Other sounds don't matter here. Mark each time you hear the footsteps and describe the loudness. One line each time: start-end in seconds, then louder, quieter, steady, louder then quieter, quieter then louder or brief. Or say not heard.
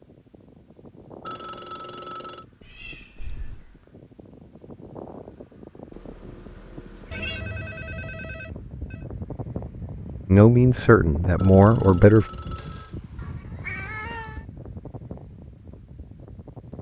not heard.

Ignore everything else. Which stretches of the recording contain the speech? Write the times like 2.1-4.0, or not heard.
10.2-12.2.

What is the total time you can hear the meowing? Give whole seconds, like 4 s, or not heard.
4 s.